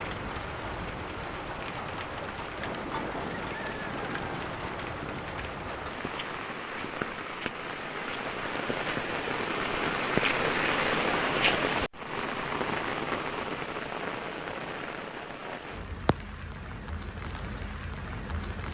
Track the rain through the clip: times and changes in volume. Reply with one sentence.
The rain can be heard from 0.0 to 18.6 s, getting louder then quieter.